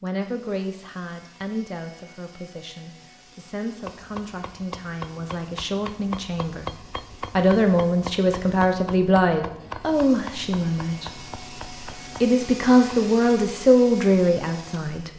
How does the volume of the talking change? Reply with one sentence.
The volume of the talking goes up.